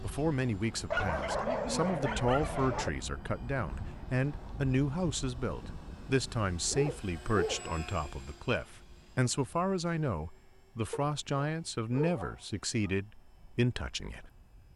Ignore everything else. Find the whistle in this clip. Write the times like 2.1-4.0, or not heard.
not heard.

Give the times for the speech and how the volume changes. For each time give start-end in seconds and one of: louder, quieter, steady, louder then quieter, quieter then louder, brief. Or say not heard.
0.0-14.7 steady.